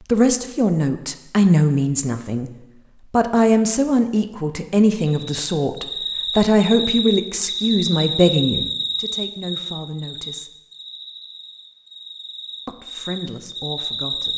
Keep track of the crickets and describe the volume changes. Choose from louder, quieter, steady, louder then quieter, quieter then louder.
quieter then louder.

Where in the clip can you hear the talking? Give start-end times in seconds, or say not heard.
0.1-2.5, 3.1-10.5, 12.7-14.3.